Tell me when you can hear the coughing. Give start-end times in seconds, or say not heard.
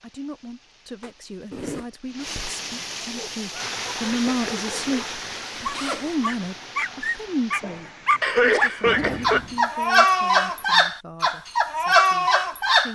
8.2-9.4.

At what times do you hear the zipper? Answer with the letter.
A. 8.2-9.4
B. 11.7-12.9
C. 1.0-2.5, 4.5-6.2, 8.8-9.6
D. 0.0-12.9
C.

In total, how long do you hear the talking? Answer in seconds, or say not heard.
13 s.